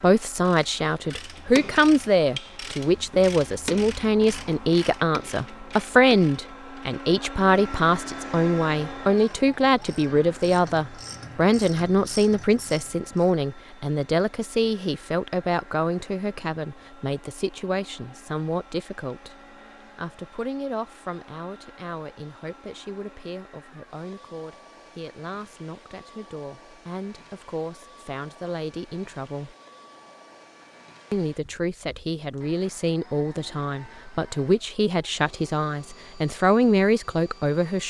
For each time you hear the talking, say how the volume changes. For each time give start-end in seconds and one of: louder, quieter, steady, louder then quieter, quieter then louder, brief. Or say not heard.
0.0-29.6 quieter
31.1-37.8 louder.